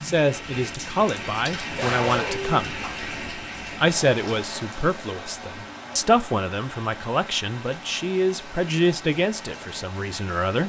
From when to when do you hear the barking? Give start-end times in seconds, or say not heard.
1.2-2.5.